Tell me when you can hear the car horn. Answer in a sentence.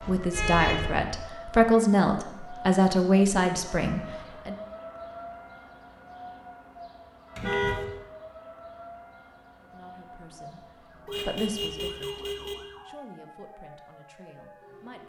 The car horn can be heard from 0.0 to 1.1 s, from 7.3 to 7.8 s and from 11.1 to 12.6 s.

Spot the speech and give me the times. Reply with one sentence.
You can hear the speech from 0.0 to 4.5 s and from 9.6 to 15.0 s.